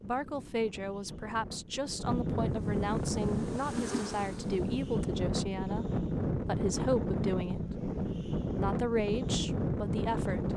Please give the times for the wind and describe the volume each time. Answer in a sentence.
You can hear the wind from 0.0 to 10.5 s, getting louder.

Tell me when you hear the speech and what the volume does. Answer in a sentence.
The speech can be heard from 0.0 to 10.5 s, at a steady volume.